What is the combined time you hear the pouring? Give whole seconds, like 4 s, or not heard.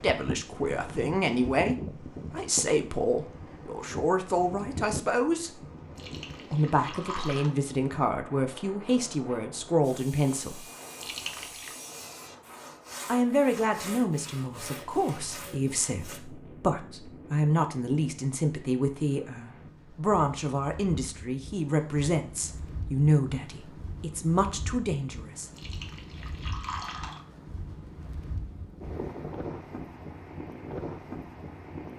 4 s.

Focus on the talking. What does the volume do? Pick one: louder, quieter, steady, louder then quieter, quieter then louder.
steady.